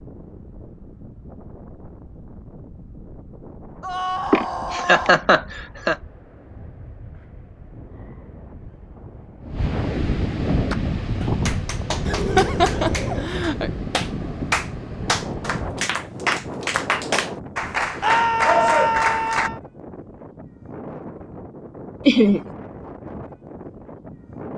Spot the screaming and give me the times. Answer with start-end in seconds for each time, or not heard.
3.8-5.2, 12.1-13.3, 18.0-19.6.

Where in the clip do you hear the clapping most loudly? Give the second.
19 s.